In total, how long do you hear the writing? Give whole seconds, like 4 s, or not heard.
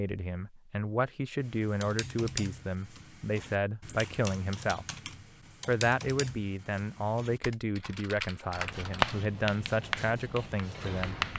3 s.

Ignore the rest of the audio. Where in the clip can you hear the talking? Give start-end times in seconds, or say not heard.
0.0-4.8, 5.7-11.2.